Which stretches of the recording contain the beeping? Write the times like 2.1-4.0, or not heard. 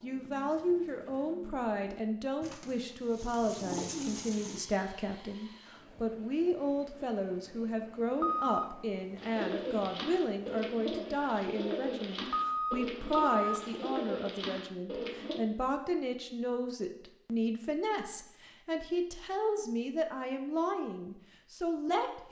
8.2-8.8, 12.3-13.6.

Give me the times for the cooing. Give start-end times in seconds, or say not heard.
0.0-4.7, 9.2-15.4.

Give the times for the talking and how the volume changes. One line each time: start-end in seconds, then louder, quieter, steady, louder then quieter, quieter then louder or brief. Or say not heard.
0.0-22.2 steady.